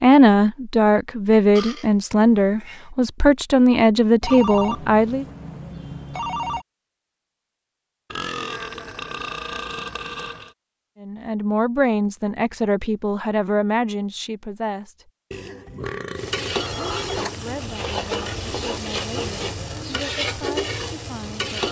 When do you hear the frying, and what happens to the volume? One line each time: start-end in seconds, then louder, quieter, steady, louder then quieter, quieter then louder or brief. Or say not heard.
16.1-21.6 steady.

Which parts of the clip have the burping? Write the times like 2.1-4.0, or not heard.
1.6-2.9, 8.1-10.6, 15.3-17.3.